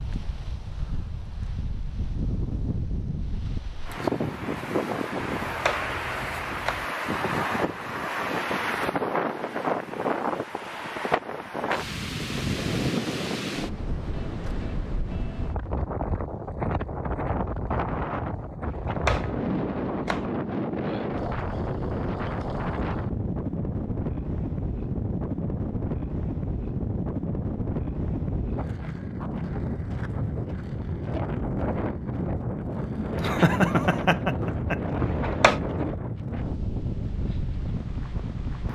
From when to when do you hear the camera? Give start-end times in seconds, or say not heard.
5.2-6.8, 18.6-20.3, 35.0-35.6.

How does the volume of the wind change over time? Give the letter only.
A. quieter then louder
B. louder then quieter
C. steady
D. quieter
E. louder
C.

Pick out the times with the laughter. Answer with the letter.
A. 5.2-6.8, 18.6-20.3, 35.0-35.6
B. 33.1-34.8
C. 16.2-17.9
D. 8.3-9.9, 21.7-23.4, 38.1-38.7
B.